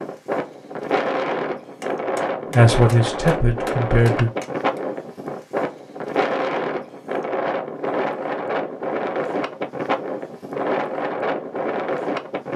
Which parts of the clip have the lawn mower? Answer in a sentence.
You can't hear the lawn mower here.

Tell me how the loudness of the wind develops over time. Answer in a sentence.
The volume of the wind stays about the same.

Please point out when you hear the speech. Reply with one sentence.
The speech can be heard from 2.5 to 4.3 s.